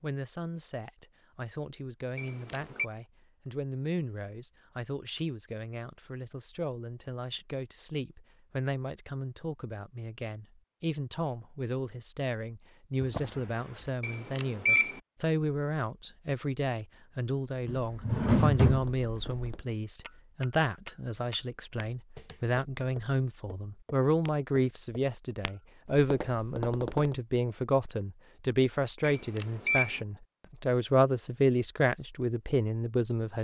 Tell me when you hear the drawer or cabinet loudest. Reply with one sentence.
The loudest moment of the drawer or cabinet is at 18 seconds.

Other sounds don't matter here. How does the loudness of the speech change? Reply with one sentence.
The loudness of the speech goes up.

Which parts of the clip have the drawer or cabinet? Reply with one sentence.
You can hear the drawer or cabinet from 13.0 to 13.9 s and from 17.6 to 19.6 s.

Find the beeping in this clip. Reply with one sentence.
The beeping can be heard from 2.1 to 2.9 s, from 14.0 to 15.0 s and from 29.0 to 30.0 s.